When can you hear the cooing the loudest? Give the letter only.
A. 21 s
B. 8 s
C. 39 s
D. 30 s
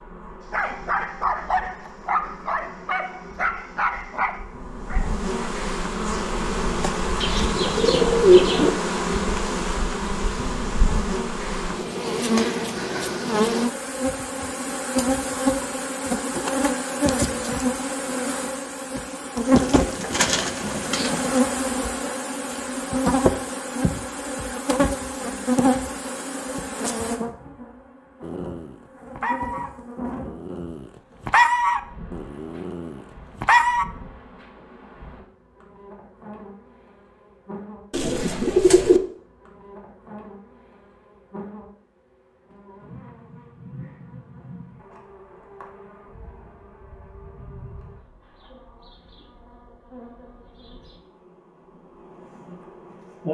B.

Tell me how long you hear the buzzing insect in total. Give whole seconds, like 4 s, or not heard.
53 s.